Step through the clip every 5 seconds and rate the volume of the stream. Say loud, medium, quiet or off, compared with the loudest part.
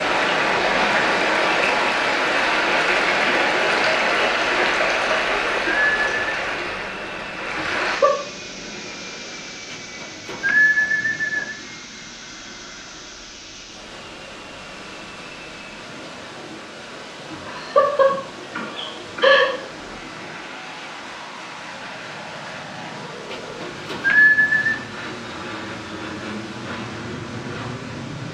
loud, medium, quiet, quiet, quiet, quiet.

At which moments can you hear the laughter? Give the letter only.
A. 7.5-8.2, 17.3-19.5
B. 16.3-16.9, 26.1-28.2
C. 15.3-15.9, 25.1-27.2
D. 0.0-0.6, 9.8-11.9
A.